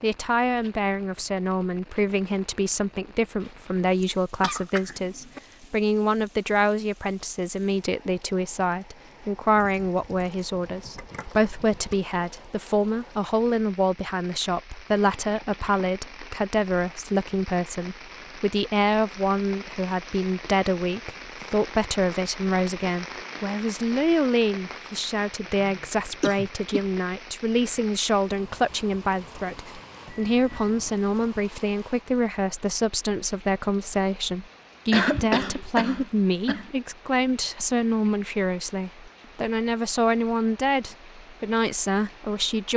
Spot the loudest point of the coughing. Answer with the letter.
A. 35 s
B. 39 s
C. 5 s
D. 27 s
A.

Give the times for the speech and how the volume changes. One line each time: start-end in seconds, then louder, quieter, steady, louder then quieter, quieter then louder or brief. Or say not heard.
0.0-42.7 steady.